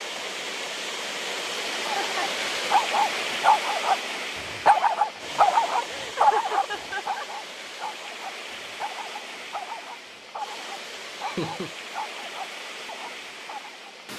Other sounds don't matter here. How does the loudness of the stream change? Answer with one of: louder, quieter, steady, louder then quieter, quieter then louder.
quieter.